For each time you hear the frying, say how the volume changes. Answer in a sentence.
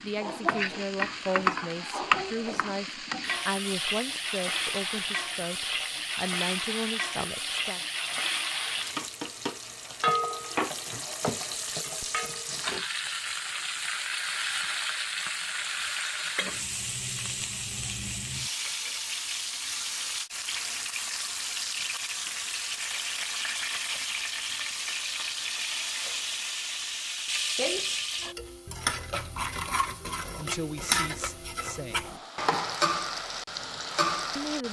The frying can be heard from 0.0 to 34.6 s, at a steady volume.